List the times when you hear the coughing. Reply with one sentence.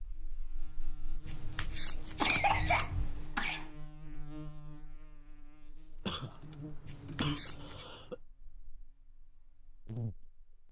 You can hear the coughing from 2.1 to 3.6 s and from 6.0 to 8.2 s.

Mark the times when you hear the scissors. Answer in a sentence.
The scissors can be heard from 1.2 to 3.2 s and from 6.8 to 7.8 s.